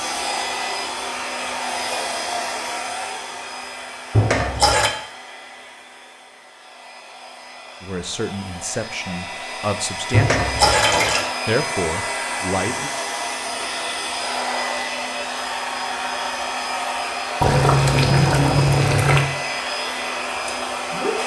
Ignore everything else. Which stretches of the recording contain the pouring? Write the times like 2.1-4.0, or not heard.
4.1-4.9, 10.1-11.2, 17.4-19.3.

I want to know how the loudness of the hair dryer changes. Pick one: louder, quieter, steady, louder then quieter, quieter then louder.
quieter then louder.